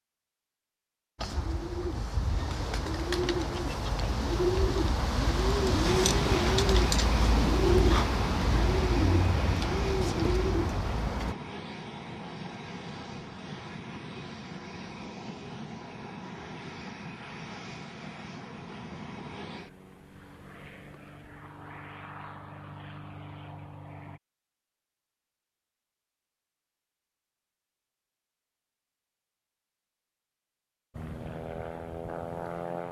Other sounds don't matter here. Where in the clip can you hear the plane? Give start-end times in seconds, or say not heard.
5.8-24.2, 30.9-32.8.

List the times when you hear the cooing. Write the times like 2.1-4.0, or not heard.
1.1-11.3.